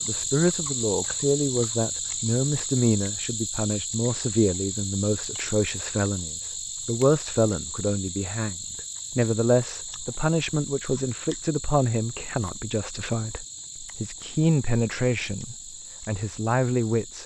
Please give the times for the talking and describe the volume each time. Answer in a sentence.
You can hear the talking from 0.1 to 17.2 s, at a steady volume.